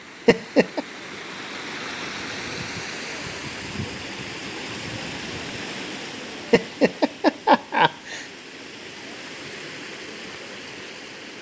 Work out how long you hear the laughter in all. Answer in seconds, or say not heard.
2 s.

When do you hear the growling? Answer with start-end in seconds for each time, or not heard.
not heard.